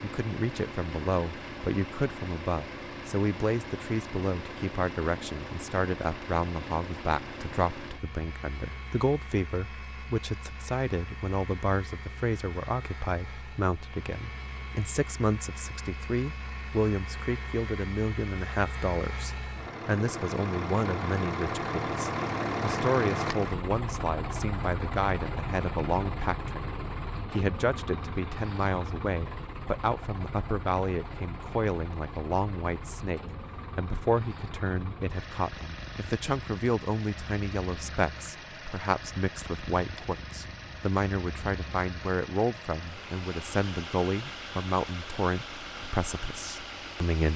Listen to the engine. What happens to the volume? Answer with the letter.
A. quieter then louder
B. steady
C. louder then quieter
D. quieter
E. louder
C.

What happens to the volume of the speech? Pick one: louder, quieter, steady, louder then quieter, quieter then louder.
steady.